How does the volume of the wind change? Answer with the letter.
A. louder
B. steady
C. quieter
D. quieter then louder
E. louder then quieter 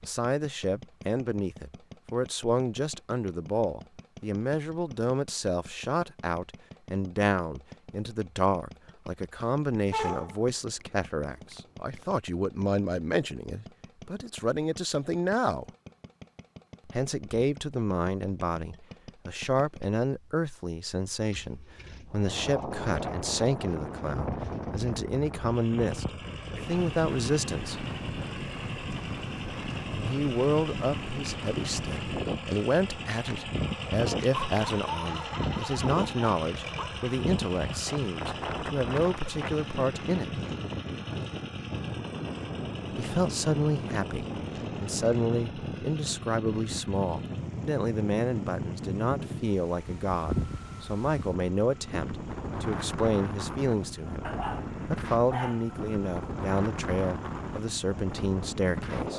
B.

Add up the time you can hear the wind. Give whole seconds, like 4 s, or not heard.
37 s.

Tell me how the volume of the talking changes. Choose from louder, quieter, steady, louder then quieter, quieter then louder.
steady.